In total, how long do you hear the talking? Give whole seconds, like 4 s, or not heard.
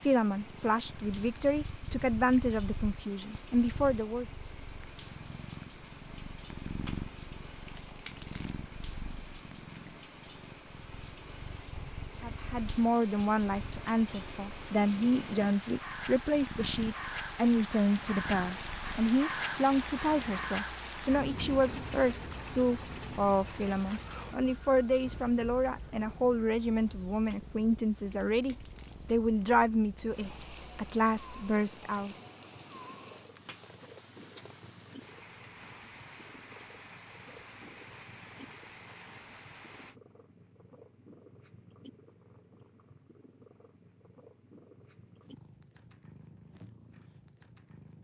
24 s.